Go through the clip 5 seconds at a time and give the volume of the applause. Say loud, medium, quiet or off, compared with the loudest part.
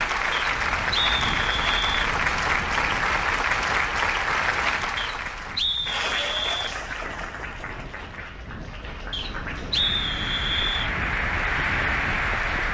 loud, medium, loud.